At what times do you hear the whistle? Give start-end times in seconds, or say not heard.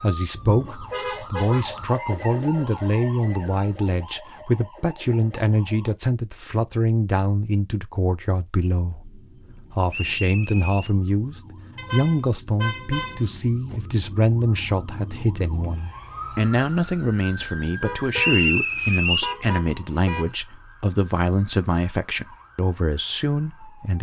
1.9-3.8, 9.9-10.9, 18.1-19.4.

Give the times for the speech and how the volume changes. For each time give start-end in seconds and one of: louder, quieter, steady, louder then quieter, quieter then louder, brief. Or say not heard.
0.0-23.9 steady.